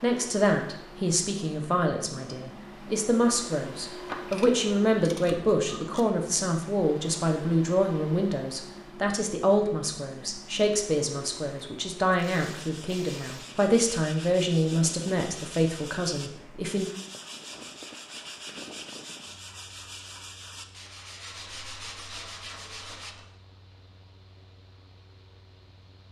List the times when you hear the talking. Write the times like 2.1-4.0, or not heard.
0.0-16.9.